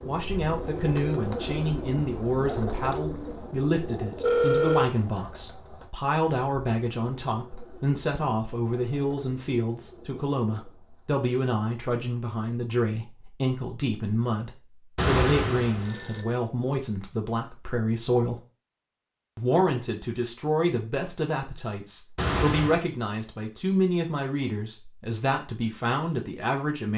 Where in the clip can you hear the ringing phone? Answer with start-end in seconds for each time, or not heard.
4.2-4.9, 14.9-16.3, 22.1-22.8.